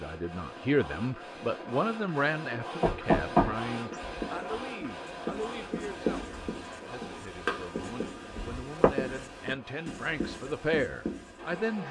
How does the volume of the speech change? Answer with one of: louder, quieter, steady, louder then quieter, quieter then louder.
quieter then louder.